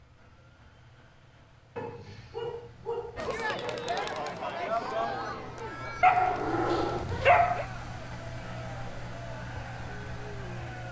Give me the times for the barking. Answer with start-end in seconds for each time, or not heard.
1.8-3.8, 6.0-7.7.